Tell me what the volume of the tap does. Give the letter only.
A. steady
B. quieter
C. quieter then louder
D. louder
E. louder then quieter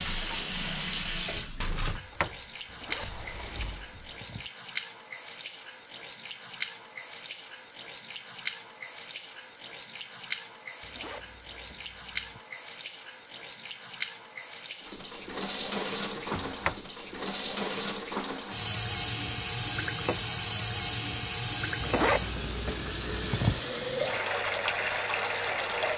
A.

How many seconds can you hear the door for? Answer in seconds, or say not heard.
3 s.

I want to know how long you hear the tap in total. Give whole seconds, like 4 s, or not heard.
26 s.